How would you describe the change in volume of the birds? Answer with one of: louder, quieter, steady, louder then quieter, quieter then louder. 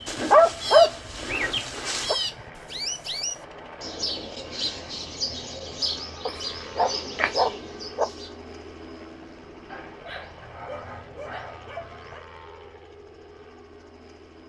steady.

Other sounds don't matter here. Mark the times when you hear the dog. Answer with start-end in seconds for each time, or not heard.
0.1-2.1, 6.2-8.1, 9.7-12.2.